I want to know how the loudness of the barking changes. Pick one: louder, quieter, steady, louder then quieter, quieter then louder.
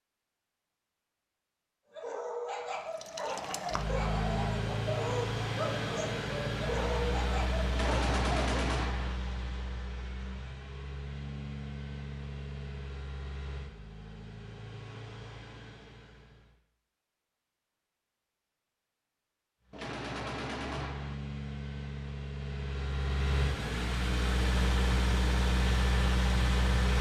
steady.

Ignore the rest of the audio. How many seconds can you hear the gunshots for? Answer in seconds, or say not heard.
3 s.